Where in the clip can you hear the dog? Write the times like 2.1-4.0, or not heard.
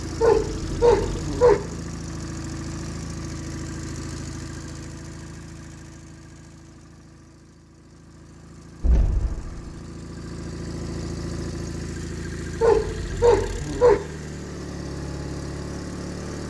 0.2-1.6, 12.6-14.0.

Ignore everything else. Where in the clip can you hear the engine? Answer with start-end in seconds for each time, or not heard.
0.0-16.4.